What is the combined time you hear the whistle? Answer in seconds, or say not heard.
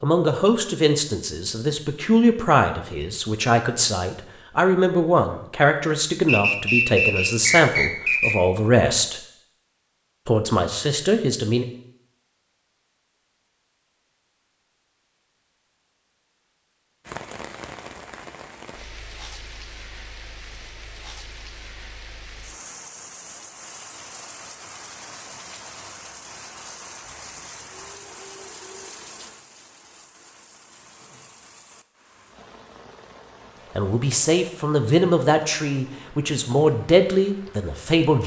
2 s.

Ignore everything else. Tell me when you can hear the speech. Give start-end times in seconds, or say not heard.
0.0-9.2, 10.2-11.7, 33.8-38.2.